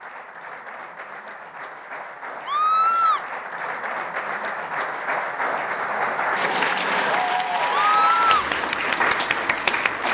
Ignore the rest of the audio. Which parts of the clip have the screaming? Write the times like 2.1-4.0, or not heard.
2.5-3.2, 7.8-8.5.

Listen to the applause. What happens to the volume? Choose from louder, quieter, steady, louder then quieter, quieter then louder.
louder.